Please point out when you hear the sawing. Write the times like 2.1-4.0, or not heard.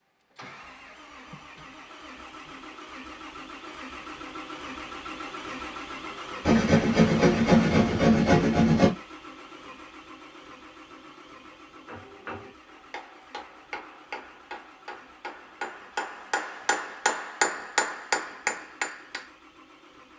6.5-8.9.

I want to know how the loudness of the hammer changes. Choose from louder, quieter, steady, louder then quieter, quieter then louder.
louder.